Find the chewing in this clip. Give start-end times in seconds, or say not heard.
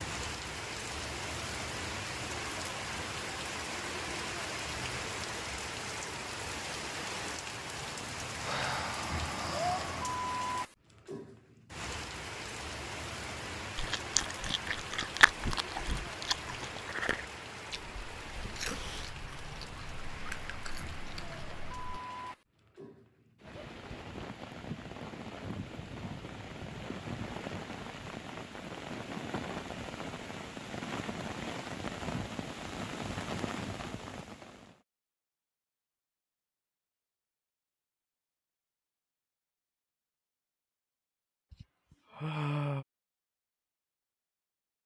13.8-22.0.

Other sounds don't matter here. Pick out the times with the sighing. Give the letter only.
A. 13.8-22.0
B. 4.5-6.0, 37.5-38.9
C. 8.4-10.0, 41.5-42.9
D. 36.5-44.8
C.